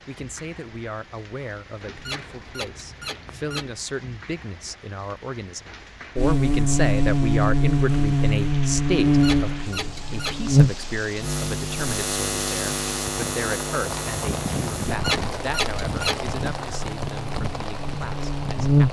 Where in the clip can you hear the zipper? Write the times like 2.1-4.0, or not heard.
not heard.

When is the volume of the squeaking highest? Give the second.
15 s.